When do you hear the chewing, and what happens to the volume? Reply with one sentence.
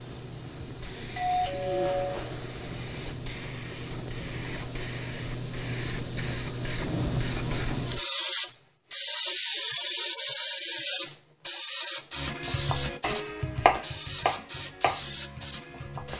The chewing can't be heard in this clip.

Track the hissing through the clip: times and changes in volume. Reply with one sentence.
The hissing can be heard from 0.0 to 16.1 s, getting louder then quieter.